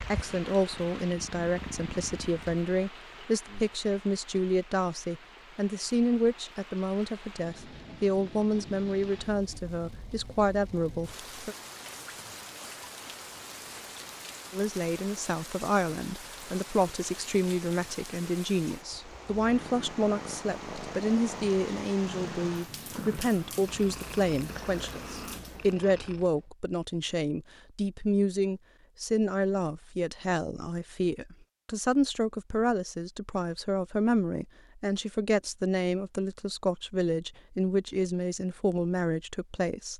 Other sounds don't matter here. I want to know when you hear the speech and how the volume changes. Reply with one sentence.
You can hear the speech from 0.0 to 11.6 s, at a steady volume; and from 14.5 to 39.9 s, at a steady volume.